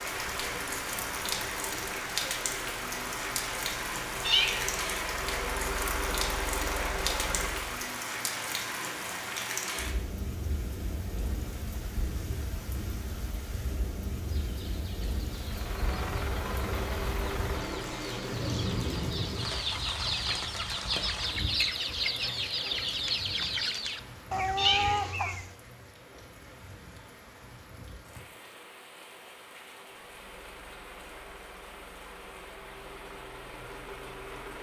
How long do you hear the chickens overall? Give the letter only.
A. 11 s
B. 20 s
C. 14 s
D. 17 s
A.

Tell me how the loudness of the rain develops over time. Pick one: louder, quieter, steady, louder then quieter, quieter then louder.
quieter.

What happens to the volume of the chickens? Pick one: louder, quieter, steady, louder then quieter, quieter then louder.
louder.